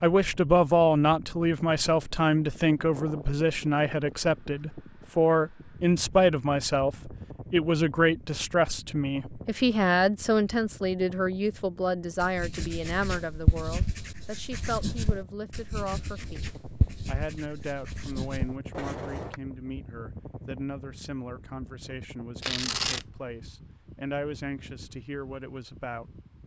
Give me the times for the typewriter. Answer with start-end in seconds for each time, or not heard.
not heard.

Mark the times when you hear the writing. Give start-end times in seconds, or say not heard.
12.2-19.4.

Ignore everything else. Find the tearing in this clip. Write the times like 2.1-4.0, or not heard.
22.4-23.1.